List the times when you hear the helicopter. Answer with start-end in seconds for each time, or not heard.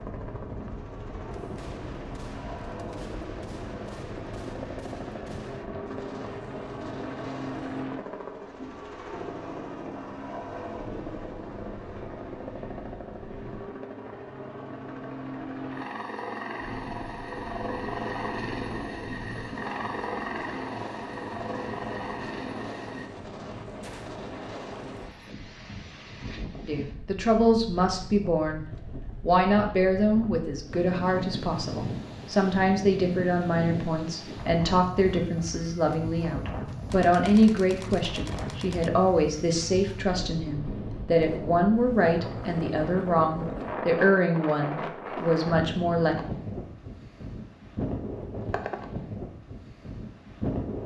0.0-23.1.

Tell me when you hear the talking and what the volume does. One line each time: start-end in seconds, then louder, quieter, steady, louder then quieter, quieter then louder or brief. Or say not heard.
26.6-46.1 steady.